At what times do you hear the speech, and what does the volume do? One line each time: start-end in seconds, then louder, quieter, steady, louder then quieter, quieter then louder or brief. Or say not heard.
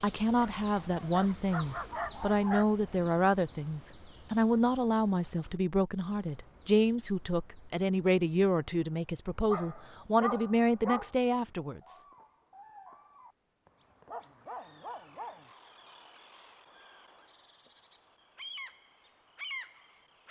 0.0-11.9 steady.